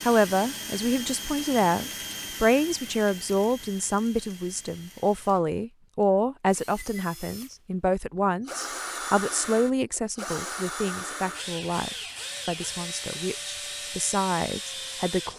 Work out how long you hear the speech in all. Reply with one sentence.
The speech can be heard for 15 seconds in total.